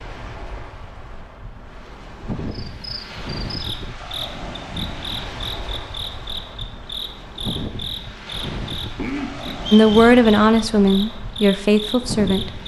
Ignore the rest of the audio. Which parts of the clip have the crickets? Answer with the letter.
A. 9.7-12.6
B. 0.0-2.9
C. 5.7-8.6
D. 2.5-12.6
D.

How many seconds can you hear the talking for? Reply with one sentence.
You can hear the talking for 3 seconds altogether.